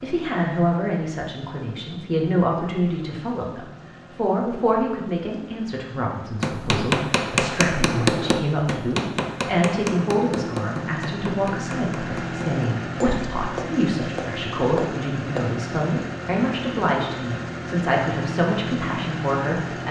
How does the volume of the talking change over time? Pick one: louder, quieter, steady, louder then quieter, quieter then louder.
steady.